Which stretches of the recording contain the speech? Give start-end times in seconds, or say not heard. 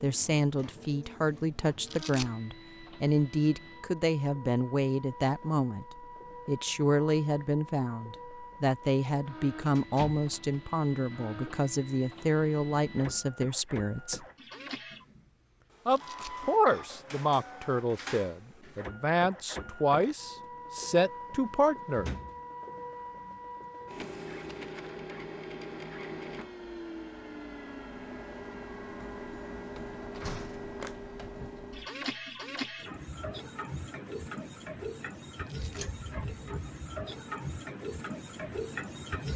0.0-14.2, 15.8-22.1.